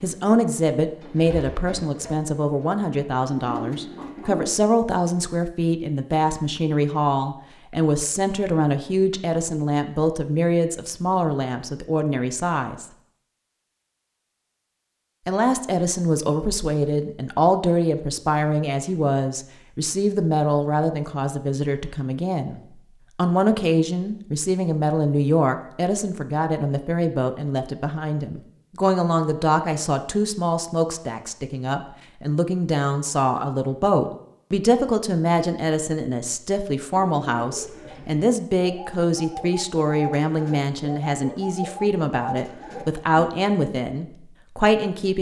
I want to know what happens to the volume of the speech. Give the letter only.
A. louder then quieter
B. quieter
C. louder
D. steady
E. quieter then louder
D.